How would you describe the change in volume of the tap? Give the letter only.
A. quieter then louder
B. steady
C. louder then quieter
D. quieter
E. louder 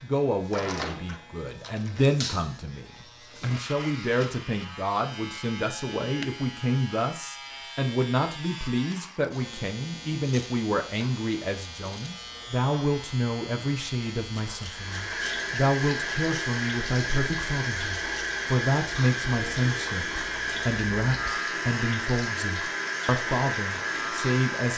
B.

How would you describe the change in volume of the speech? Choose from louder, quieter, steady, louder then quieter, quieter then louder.
steady.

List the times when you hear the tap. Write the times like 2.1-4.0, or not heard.
14.7-24.7.